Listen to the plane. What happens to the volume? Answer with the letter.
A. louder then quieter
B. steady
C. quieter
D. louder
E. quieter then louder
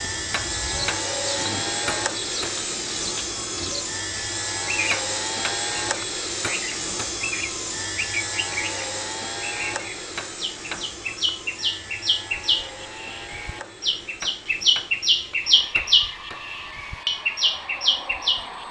C.